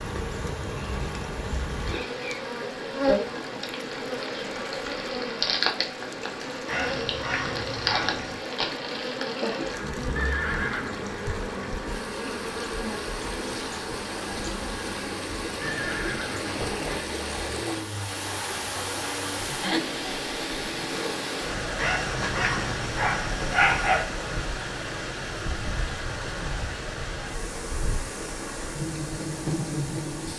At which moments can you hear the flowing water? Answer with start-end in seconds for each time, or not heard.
0.0-30.3.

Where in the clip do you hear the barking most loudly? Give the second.
24 s.